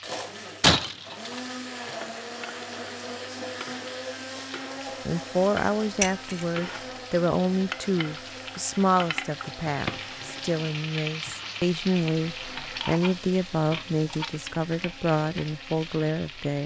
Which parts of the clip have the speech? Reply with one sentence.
The speech can be heard from 5.0 to 16.6 s.